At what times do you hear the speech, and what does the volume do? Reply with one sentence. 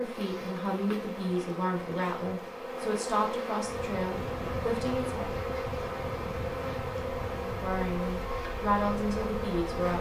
The speech can be heard from 0.0 to 5.3 s, at a steady volume; and briefly from 7.3 to 9.9 s.